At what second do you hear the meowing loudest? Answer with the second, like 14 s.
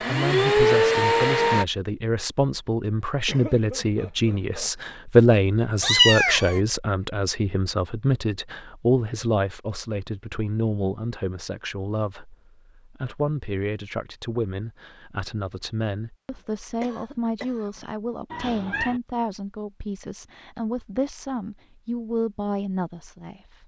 6 s.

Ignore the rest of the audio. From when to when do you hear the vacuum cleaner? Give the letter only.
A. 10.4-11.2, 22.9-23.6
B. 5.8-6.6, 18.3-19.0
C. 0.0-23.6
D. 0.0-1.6
D.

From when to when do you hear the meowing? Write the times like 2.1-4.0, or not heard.
5.8-6.6, 18.3-19.0.